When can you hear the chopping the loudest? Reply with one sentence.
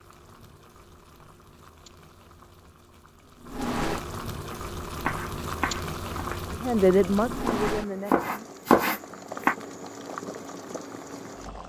The volume of the chopping peaks at 9 seconds.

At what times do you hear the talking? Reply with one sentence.
The talking can be heard from 6.5 to 8.3 s.